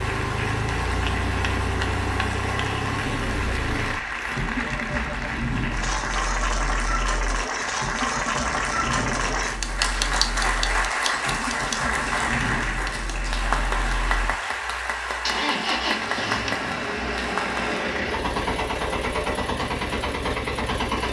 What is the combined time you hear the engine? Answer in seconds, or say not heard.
21 s.